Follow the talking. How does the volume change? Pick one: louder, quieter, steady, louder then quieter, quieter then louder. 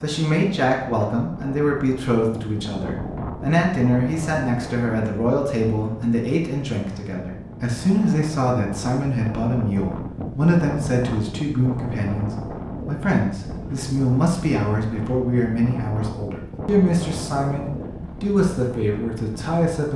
steady.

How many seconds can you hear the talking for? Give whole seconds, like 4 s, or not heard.
20 s.